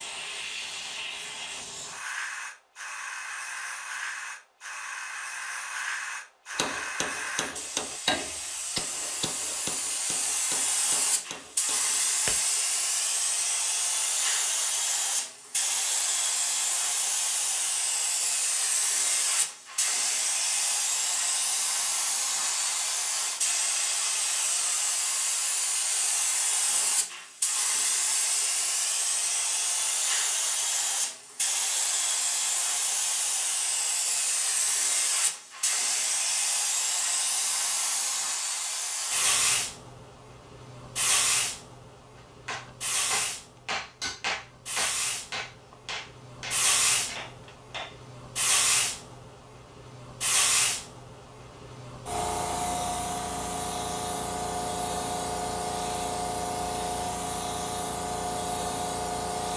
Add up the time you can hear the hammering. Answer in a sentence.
The hammering can be heard for 12 seconds in total.